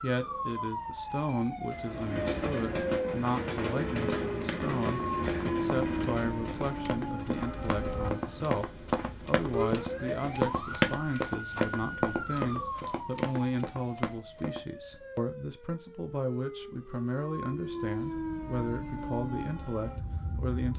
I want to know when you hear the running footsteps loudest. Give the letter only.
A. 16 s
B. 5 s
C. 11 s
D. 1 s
C.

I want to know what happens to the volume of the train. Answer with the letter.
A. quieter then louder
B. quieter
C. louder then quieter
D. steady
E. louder
B.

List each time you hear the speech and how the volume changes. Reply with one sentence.
You can hear the speech from 0.0 to 20.7 s, at a steady volume.